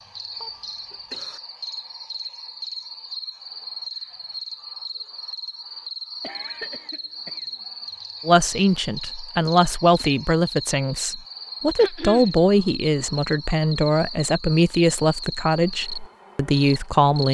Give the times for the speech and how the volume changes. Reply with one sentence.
The speech can be heard from 8.2 to 17.2 s, at a steady volume.